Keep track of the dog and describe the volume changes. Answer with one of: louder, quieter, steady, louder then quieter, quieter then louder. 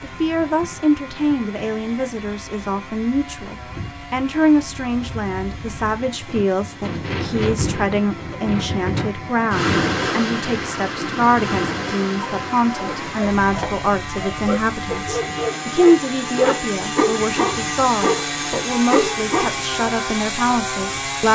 louder.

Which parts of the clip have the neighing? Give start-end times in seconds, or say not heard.
not heard.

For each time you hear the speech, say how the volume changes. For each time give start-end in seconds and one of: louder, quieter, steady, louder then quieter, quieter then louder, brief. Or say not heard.
0.0-21.2 steady.